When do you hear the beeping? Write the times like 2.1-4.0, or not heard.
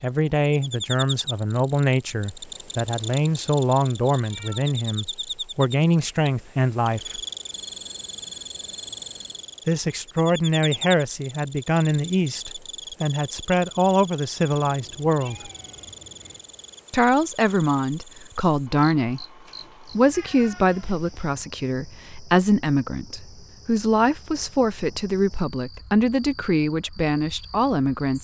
7.5-9.4.